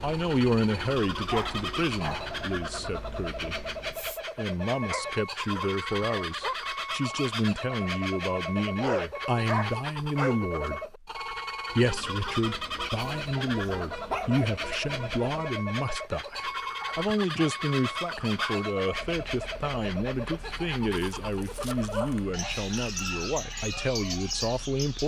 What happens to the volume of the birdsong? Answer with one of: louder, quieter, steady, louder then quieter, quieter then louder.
steady.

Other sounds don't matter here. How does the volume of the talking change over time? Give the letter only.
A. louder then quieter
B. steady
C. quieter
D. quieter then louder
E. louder
B.